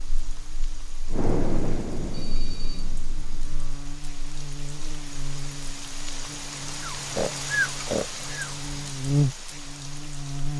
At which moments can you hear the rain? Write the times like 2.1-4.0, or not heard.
0.0-10.5.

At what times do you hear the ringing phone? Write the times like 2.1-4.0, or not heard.
2.1-2.9.